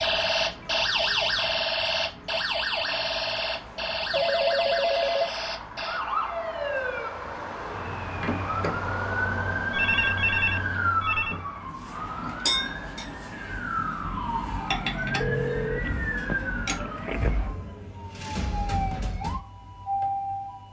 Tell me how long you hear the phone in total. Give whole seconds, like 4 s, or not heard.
5 s.